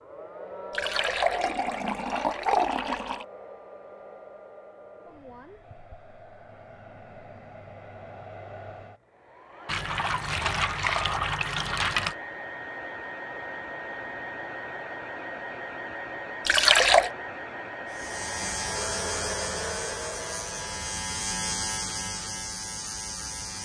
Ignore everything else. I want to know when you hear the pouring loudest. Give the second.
17 s.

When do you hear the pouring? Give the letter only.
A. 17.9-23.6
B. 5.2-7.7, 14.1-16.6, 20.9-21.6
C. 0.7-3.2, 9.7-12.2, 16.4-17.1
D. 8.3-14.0
C.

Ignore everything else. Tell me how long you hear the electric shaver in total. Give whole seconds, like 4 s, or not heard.
6 s.